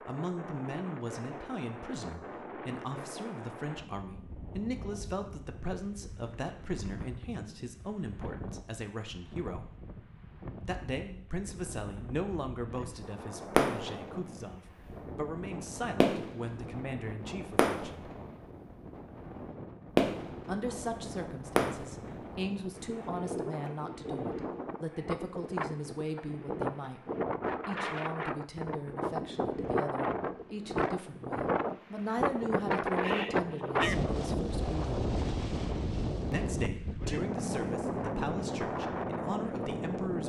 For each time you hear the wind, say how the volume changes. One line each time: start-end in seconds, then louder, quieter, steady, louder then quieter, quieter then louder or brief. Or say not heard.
0.0-40.2 louder.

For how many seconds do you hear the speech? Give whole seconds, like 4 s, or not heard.
35 s.